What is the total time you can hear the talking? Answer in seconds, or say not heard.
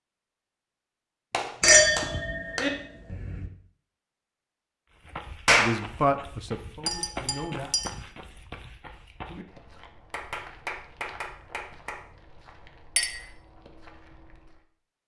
2 s.